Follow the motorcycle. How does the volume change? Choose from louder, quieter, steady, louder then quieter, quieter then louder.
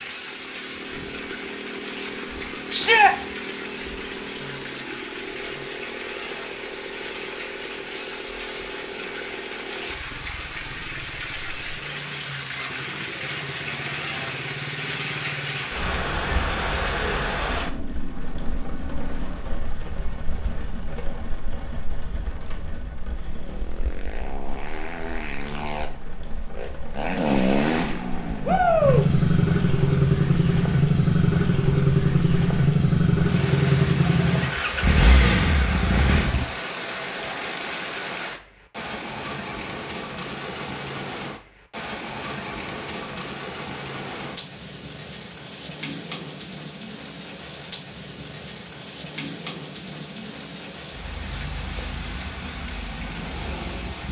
louder.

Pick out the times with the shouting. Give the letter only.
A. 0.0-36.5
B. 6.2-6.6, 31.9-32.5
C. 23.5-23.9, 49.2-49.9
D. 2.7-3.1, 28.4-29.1
D.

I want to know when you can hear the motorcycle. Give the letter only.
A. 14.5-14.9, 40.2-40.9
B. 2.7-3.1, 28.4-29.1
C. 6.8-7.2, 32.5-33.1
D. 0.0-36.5
D.